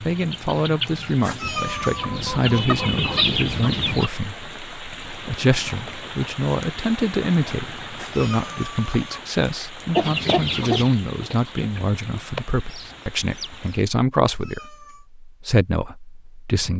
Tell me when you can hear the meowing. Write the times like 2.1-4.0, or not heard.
1.2-2.0, 8.0-9.2, 14.2-15.1.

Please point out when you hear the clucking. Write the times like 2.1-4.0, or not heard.
0.0-4.1, 9.9-13.8.